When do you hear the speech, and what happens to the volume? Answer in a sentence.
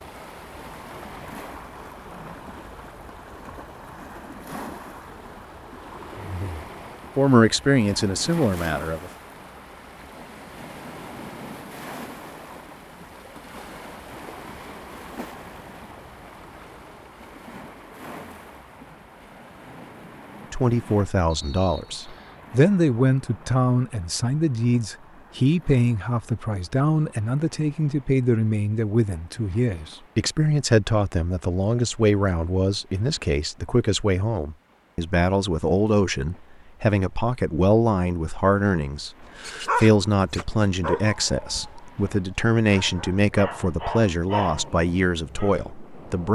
The speech can be heard briefly from 6.2 to 9.1 s; and from 20.5 to 46.3 s, at a steady volume.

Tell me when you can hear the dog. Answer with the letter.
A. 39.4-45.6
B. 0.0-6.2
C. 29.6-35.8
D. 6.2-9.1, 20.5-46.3
A.